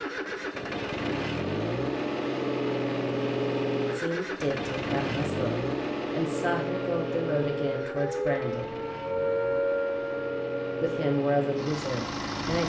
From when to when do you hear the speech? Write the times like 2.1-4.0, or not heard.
3.9-8.8, 10.8-12.6.